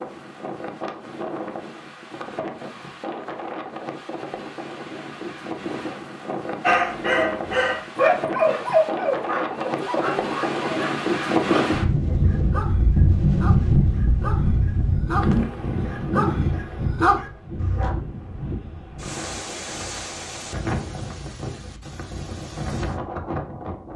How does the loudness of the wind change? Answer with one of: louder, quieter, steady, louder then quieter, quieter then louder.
louder then quieter.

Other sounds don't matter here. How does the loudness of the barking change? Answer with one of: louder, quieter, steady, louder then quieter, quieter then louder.
quieter then louder.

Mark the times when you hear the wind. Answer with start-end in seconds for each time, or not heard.
0.0-23.9.